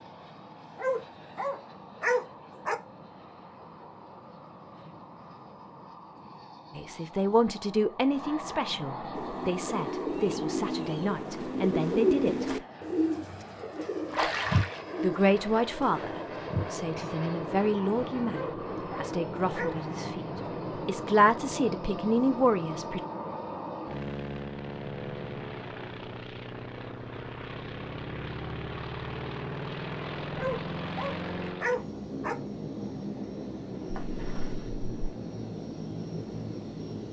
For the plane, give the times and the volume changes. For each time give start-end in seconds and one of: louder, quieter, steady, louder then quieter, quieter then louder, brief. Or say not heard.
0.0-37.0 louder.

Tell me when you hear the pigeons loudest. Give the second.
12 s.